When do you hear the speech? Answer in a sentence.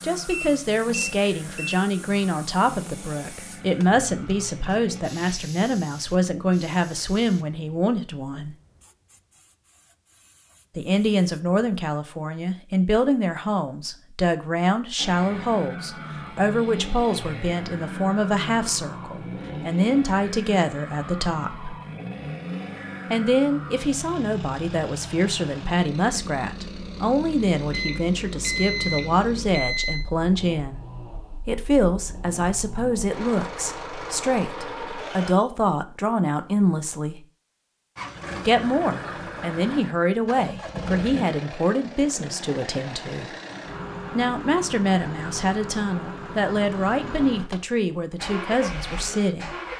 The speech can be heard from 0.0 to 8.6 s, from 10.8 to 21.8 s, from 23.1 to 30.9 s, from 31.4 to 37.2 s, from 38.5 to 43.2 s and from 44.1 to 49.5 s.